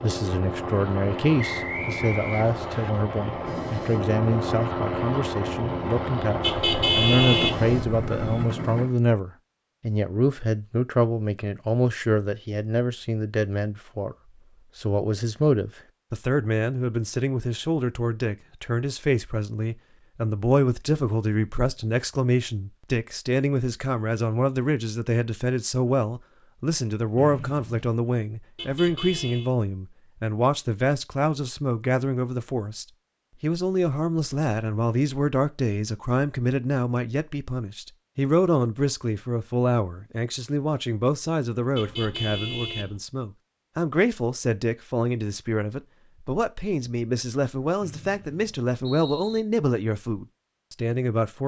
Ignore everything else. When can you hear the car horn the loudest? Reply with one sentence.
The volume of the car horn peaks at 7 seconds.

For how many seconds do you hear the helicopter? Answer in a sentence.
The helicopter can be heard for 9 seconds in total.